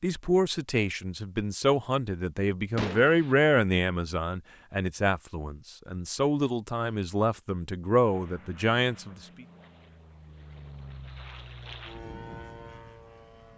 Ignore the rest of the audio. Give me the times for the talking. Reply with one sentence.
The talking can be heard from 0.0 to 9.4 s.